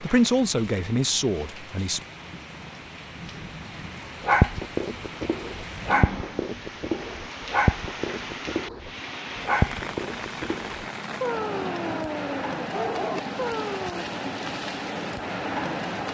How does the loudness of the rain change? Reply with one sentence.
The loudness of the rain goes up.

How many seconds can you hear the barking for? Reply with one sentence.
The barking can be heard for 10 seconds in total.